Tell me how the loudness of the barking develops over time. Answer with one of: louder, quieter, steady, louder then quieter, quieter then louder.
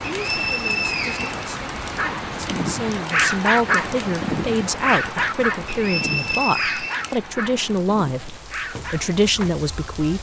quieter.